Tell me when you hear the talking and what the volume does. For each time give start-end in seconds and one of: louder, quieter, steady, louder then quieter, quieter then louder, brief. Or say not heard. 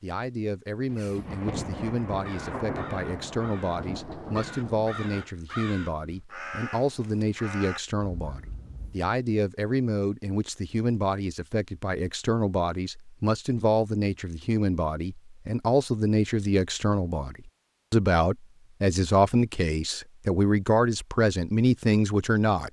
0.0-22.6 louder.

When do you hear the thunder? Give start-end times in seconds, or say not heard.
0.8-5.3.